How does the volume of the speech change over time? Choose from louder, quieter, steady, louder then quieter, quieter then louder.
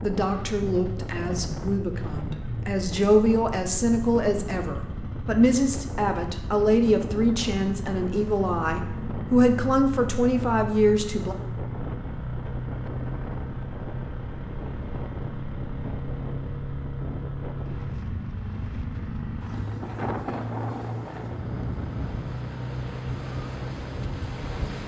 louder.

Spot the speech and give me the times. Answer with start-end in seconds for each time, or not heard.
0.0-11.3.